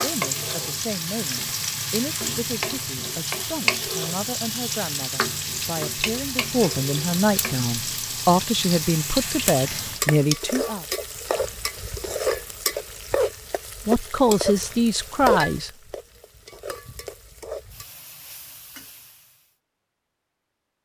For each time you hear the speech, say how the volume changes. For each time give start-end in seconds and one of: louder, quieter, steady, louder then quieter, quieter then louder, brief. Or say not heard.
0.0-10.8 louder
13.8-15.7 brief.